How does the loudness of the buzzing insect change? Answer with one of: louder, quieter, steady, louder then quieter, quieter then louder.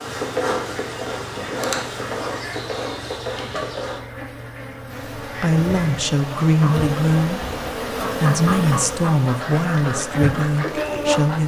quieter then louder.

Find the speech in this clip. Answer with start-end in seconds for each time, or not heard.
5.3-11.4.